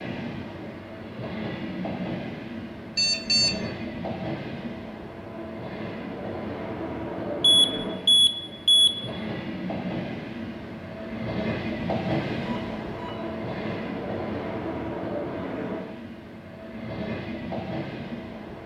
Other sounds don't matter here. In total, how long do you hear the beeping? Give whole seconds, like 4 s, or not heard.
3 s.